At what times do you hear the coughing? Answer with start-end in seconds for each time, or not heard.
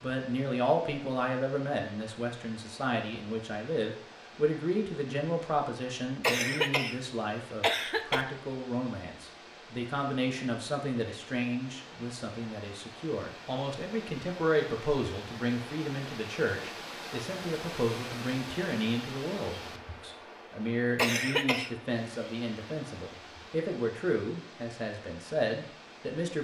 6.2-7.0, 7.6-8.2, 20.9-21.7.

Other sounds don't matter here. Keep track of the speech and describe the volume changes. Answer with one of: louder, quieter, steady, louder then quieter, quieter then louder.
steady.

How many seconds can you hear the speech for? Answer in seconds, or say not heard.
26 s.